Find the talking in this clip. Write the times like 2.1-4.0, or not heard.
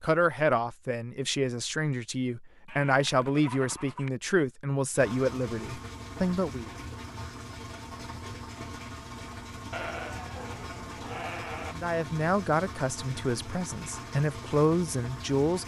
0.0-6.7, 11.7-15.6.